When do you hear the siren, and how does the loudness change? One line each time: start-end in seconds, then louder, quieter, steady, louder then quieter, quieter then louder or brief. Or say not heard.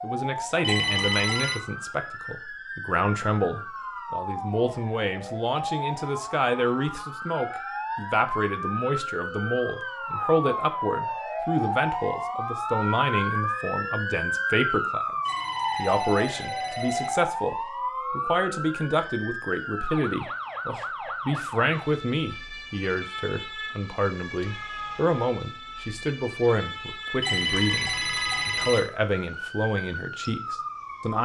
0.0-31.2 louder then quieter.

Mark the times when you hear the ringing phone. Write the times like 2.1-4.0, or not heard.
0.6-1.6, 15.2-17.1, 27.2-28.9.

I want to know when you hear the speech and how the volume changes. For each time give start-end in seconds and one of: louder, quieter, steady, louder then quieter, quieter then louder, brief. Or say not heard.
0.0-15.2 steady
15.8-31.2 steady.